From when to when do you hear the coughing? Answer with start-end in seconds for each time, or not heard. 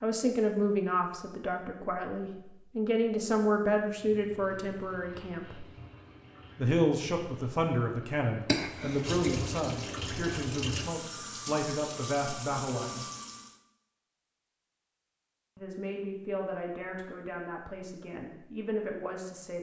8.4-9.2.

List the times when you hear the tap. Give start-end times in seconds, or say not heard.
3.9-13.6.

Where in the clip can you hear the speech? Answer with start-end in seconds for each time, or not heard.
0.0-5.7, 6.5-13.1, 15.6-19.5.